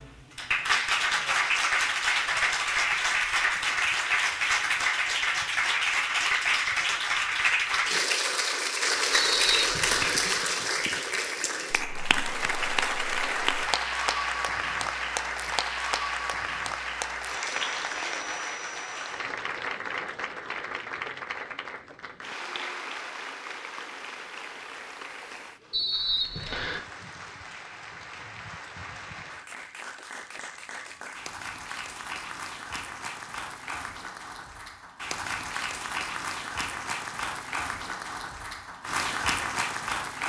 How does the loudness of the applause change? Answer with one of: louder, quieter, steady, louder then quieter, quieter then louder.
quieter then louder.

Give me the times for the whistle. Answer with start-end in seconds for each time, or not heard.
9.1-10.2, 25.7-26.8.